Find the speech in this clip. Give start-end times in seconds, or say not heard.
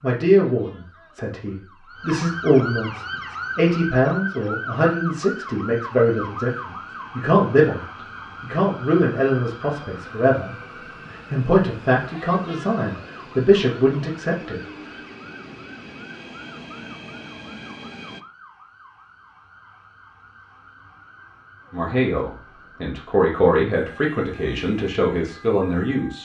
0.0-14.6, 21.7-26.2.